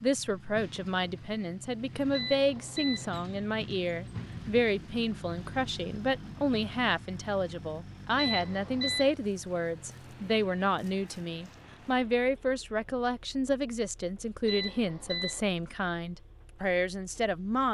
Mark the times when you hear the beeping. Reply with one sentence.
The beeping can be heard from 2.1 to 3.1 s, from 8.2 to 9.2 s and from 14.4 to 15.4 s.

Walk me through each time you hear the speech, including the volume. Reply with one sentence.
The speech can be heard from 0.0 to 17.7 s, at a steady volume.